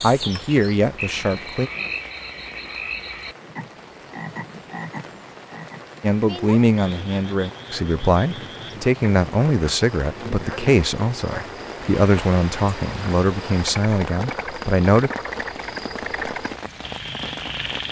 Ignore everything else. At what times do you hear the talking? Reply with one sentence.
You can hear the talking from 0.0 to 1.7 s and from 6.0 to 15.1 s.